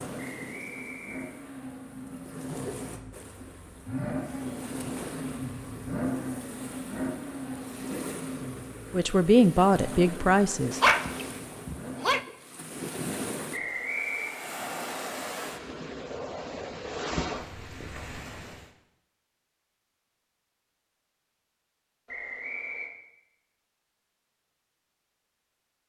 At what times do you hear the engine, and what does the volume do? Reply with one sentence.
You can hear the engine from 0.0 to 12.2 s, getting louder then quieter.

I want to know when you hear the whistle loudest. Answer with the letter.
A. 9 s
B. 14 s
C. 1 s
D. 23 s
B.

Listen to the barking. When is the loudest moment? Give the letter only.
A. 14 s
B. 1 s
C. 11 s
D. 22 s
C.